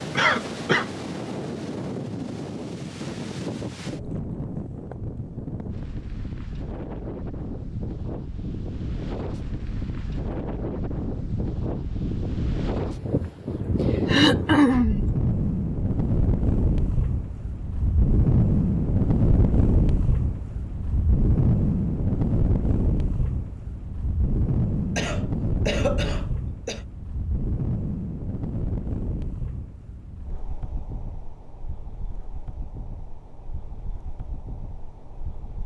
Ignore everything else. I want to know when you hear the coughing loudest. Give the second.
15 s.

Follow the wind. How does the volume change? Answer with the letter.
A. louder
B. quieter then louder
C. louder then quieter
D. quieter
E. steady
C.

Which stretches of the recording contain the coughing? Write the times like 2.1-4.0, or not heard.
0.1-0.8, 14.1-15.1, 24.9-26.8.